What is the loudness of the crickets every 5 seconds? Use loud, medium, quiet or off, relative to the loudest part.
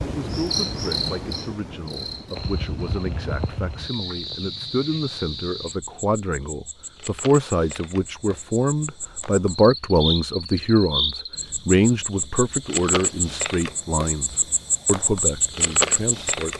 medium, quiet, loud, loud.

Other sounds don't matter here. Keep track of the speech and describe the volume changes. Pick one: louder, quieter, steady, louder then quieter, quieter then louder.
louder then quieter.